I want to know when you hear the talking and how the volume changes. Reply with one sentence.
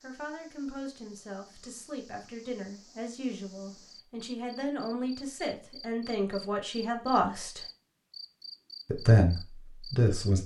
The talking can be heard from 0.0 to 7.6 s, getting louder; and briefly from 8.8 to 10.4 s.